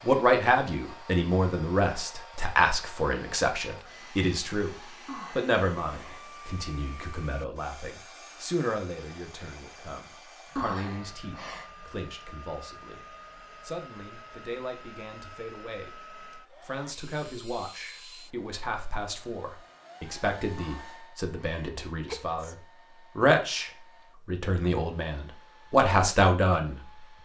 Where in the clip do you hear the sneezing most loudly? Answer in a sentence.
The loudest moment of the sneezing is at 11 seconds.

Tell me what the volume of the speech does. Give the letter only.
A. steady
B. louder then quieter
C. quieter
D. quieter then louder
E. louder
D.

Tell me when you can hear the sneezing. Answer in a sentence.
The sneezing can be heard from 5.0 to 6.3 s, from 10.6 to 11.7 s and from 20.6 to 22.6 s.